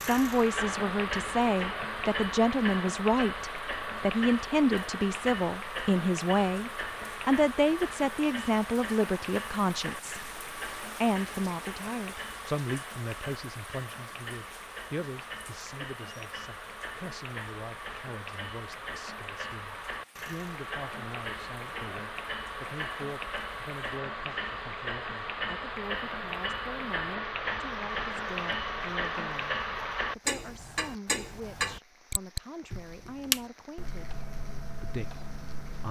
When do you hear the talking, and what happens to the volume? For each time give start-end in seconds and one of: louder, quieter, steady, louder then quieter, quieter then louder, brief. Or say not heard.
0.0-35.8 quieter.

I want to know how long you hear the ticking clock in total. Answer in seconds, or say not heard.
36 s.